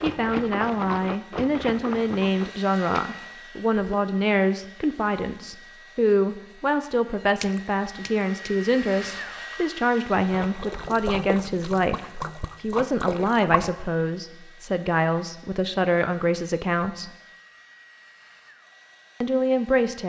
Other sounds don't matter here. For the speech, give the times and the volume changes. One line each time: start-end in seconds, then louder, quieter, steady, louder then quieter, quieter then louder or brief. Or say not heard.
0.0-17.1 steady
19.2-20.0 brief.